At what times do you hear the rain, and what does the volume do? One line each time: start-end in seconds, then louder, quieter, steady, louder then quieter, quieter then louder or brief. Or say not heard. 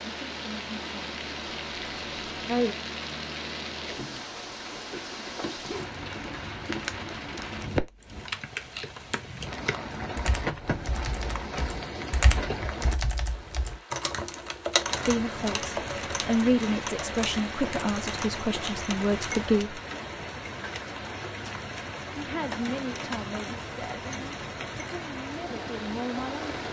0.0-26.6 steady.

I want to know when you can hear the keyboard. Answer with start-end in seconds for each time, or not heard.
8.0-19.4.